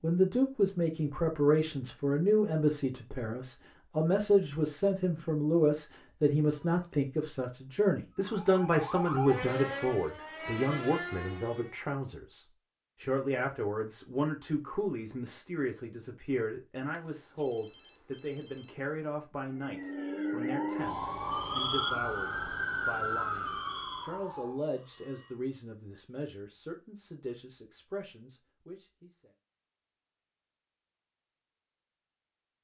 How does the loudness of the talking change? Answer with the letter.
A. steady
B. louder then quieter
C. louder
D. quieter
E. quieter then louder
D.